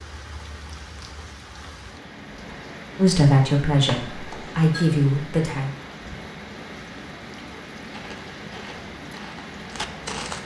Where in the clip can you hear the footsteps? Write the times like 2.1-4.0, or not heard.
7.9-10.4.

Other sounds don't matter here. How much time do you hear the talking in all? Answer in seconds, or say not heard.
3 s.